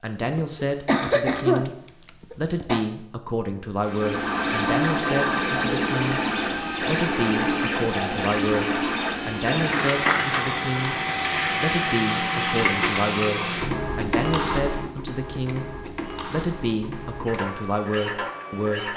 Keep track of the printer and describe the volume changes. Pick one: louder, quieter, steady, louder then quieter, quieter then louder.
quieter.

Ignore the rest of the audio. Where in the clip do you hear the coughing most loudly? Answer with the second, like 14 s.
1 s.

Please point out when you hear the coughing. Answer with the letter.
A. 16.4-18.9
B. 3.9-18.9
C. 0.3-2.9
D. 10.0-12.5
C.